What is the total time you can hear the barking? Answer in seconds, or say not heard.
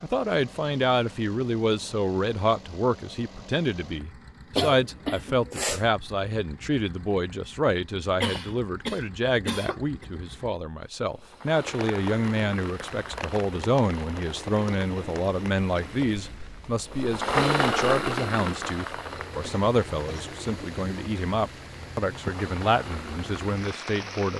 not heard.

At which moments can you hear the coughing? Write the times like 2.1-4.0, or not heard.
4.5-5.8, 8.2-10.1, 19.4-20.4.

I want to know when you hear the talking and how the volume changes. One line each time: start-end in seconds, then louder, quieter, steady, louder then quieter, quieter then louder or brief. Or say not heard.
0.0-24.3 steady.